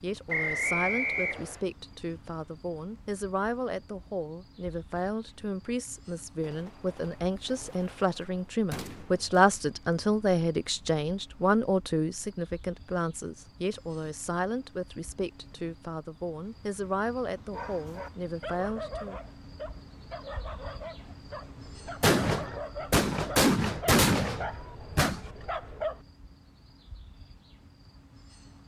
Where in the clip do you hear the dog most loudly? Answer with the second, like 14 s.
26 s.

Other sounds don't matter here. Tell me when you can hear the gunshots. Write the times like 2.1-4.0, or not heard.
6.4-9.4, 22.0-25.3.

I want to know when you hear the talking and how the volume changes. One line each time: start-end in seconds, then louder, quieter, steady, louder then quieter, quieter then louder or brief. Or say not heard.
0.0-19.2 louder then quieter.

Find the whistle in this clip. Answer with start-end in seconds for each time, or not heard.
0.2-1.6.